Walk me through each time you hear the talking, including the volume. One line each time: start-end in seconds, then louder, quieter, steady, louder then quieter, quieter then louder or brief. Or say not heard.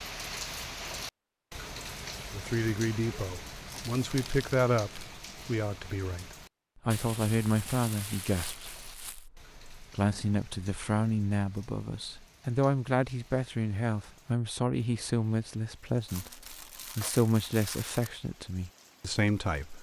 2.3-19.7 steady.